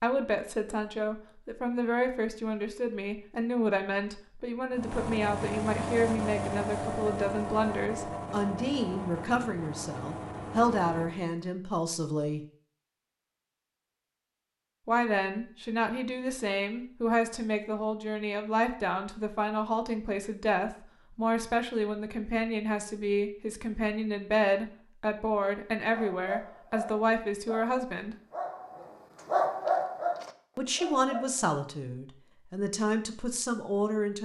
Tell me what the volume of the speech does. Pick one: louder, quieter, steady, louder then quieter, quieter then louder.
steady.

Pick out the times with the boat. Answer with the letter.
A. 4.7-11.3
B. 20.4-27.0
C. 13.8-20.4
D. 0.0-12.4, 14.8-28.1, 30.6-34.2
A.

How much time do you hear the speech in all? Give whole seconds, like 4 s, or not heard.
29 s.